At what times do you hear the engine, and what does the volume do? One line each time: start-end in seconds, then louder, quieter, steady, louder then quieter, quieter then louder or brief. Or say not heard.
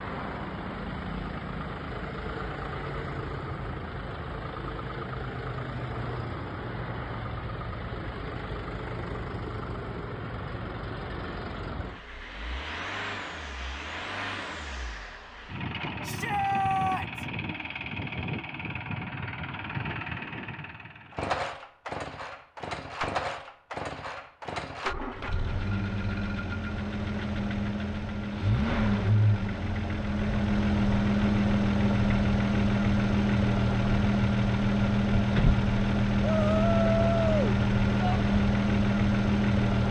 0.0-39.8 louder.